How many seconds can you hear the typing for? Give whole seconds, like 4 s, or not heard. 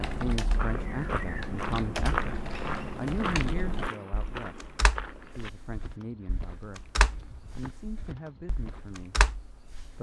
10 s.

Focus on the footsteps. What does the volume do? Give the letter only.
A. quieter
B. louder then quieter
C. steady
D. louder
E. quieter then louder
A.